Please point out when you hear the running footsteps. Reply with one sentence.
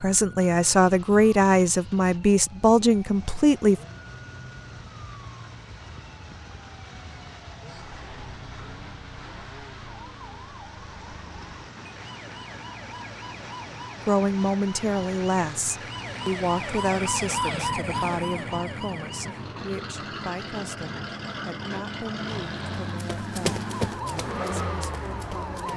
You can hear the running footsteps from 22.9 to 25.7 s.